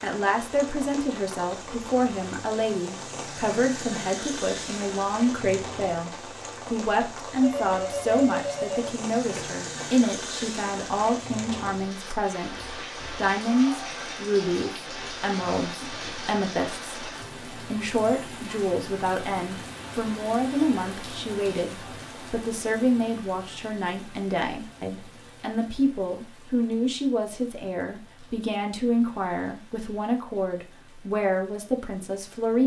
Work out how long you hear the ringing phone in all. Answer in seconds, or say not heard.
2 s.